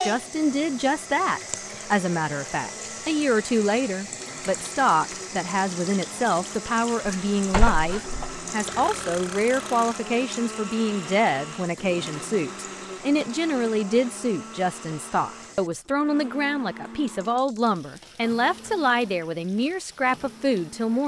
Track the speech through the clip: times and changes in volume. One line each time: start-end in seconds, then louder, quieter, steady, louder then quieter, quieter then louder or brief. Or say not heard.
0.0-21.0 steady.